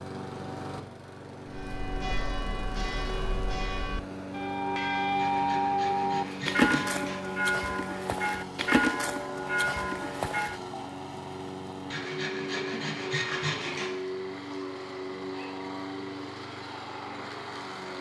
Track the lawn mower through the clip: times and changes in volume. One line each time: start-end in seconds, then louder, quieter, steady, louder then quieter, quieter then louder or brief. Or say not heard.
0.0-17.9 steady.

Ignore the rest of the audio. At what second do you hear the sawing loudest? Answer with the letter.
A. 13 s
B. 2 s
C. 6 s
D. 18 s
A.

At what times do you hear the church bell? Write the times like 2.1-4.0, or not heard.
1.5-10.8.